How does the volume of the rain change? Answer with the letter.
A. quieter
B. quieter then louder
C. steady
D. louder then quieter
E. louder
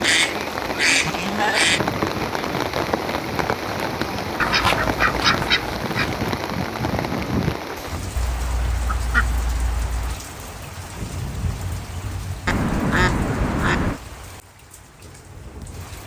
A.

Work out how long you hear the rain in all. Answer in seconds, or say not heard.
16 s.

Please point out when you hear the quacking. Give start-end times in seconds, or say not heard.
0.0-1.8, 4.4-6.2, 8.2-10.2, 12.4-14.0.